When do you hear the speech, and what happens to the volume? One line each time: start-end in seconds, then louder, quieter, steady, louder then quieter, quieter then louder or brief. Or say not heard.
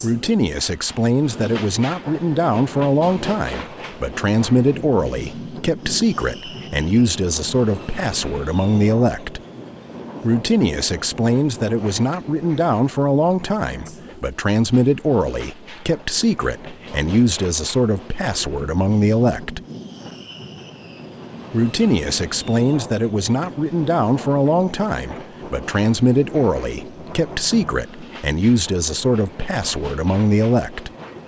0.0-9.4 steady
10.2-19.6 steady
21.5-30.9 steady.